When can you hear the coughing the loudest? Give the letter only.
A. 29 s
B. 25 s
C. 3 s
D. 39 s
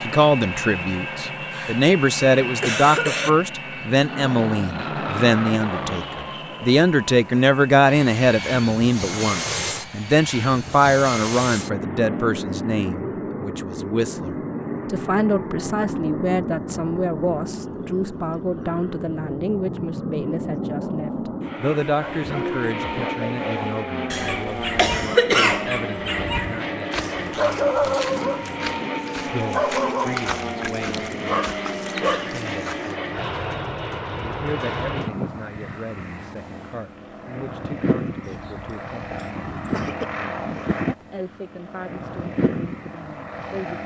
B.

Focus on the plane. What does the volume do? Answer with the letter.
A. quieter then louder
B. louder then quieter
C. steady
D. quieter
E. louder
C.